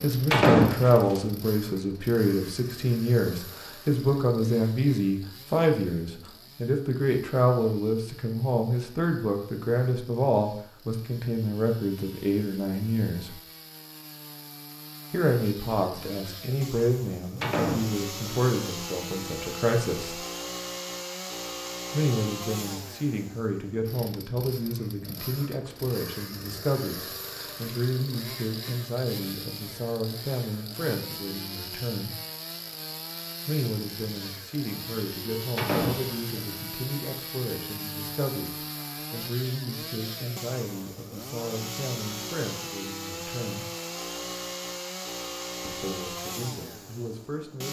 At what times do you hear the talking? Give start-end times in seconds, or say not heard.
0.0-13.4, 15.1-20.2, 21.9-32.1, 33.5-43.6, 45.6-47.6.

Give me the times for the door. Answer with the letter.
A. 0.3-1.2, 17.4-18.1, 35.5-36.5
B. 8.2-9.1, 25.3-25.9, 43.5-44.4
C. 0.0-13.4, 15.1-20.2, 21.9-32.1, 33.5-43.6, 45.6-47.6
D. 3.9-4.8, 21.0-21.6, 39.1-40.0
A.